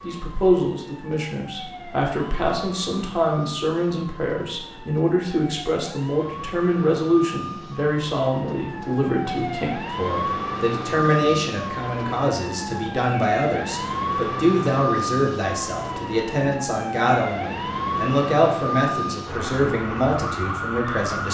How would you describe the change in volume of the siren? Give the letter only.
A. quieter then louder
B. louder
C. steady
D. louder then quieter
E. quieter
B.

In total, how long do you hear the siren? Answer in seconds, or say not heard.
21 s.